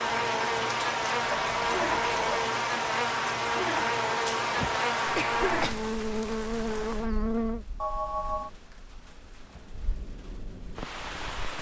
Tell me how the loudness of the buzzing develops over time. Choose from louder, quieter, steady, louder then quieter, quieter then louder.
steady.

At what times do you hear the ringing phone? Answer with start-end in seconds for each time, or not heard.
1.2-2.5, 7.8-8.5.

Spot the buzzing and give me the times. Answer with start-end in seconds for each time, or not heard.
0.0-7.7.